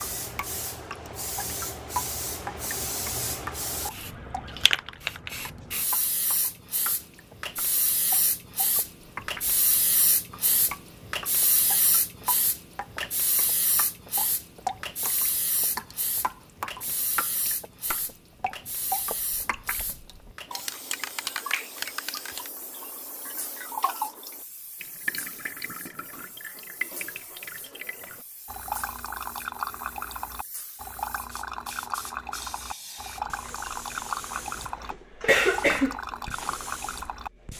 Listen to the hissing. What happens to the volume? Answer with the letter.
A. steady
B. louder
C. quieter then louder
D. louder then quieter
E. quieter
C.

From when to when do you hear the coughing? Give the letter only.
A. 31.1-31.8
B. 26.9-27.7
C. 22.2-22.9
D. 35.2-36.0
D.